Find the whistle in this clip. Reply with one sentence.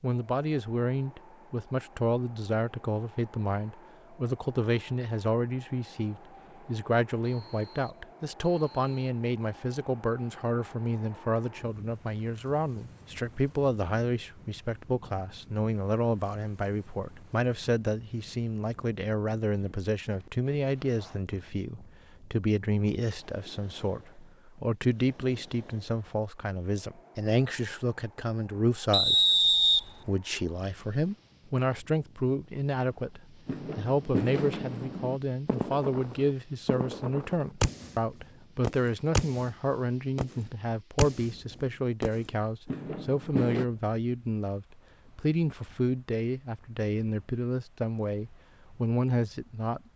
The whistle can be heard from 7.2 to 9.1 s and from 28.9 to 29.8 s.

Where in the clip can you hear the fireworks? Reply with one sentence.
You can hear the fireworks from 33.5 to 38.0 s and from 38.6 to 43.6 s.